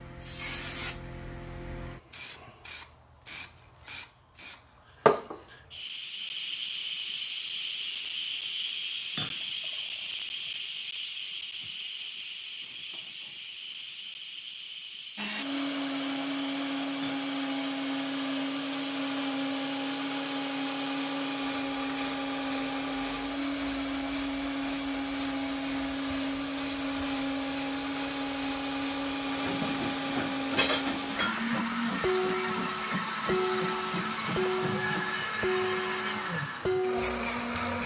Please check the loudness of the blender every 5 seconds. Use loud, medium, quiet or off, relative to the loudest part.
off, off, off, loud, loud, loud, loud, loud.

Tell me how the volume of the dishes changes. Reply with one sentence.
The loudness of the dishes stays about the same.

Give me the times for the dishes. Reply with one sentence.
You can hear the dishes from 29.6 to 37.1 s.